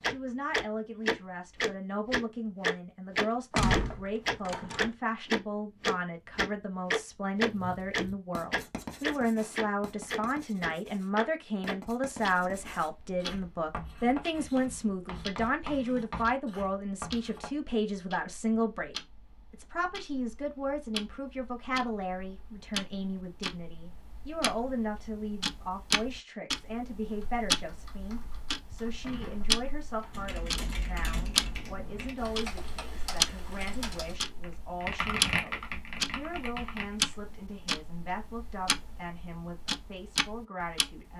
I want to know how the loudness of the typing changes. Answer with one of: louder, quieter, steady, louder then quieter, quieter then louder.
louder.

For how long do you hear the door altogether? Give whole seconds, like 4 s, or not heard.
3 s.